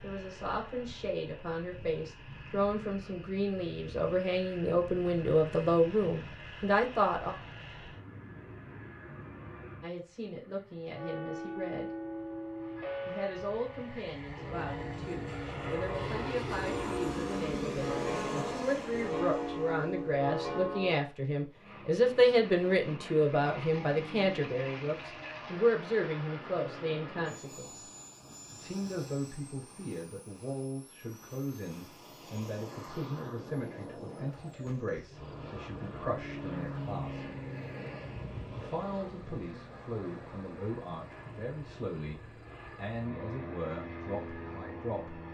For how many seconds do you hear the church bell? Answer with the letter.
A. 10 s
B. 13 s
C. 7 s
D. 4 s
A.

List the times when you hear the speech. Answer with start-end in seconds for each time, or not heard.
0.0-7.3, 9.8-11.9, 13.1-27.9, 28.5-37.2, 38.5-45.2.